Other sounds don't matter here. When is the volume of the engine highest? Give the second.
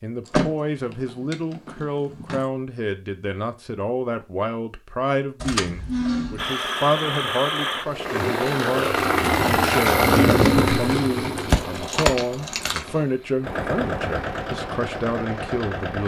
10 s.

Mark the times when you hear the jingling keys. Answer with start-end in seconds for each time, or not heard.
0.2-2.5, 5.4-6.5, 11.3-13.1.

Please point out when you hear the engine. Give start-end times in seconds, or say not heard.
6.3-16.0.